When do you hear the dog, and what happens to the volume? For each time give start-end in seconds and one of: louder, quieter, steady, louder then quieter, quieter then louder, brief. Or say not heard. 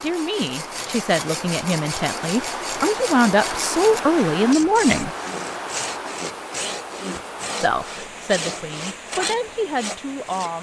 not heard.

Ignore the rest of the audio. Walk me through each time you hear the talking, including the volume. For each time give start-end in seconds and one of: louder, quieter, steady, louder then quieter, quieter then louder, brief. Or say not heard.
0.0-5.1 louder
7.6-10.5 brief.